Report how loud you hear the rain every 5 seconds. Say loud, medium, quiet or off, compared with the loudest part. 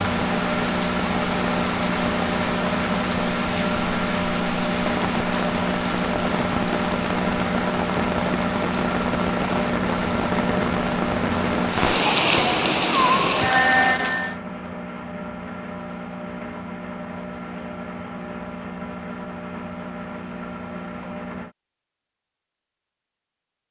medium, medium, loud, off, off.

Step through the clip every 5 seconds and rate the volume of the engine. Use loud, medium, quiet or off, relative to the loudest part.
loud, loud, loud, medium, medium.